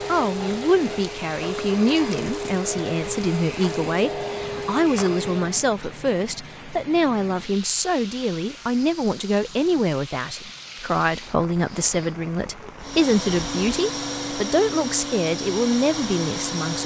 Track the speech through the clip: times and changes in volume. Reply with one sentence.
You can hear the speech from 0.1 to 16.8 s, at a steady volume.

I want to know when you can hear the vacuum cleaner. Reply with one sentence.
The vacuum cleaner can be heard from 0.0 to 5.7 s and from 12.8 to 16.8 s.